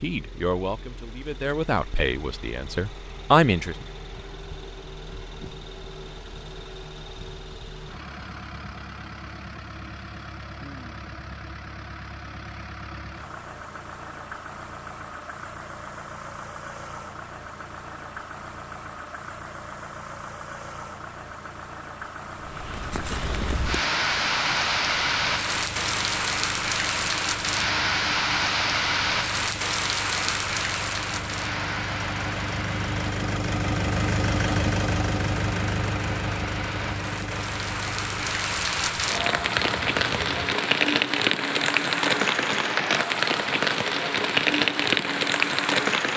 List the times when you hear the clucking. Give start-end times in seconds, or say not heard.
not heard.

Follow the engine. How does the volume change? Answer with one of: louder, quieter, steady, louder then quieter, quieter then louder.
louder.